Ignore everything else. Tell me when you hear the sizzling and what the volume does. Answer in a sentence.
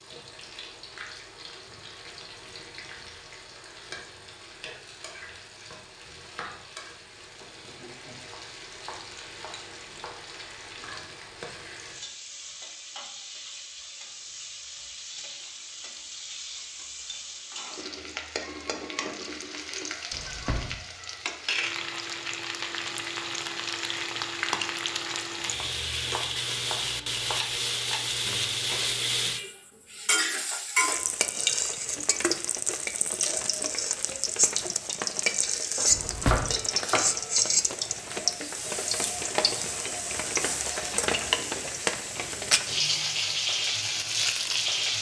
The sizzling can be heard from 0.0 to 44.9 s, getting louder.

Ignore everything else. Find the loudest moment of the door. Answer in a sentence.
The loudest moment of the door is at 36 seconds.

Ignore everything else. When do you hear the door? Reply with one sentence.
You can hear the door from 20.1 to 20.8 s and from 35.9 to 36.6 s.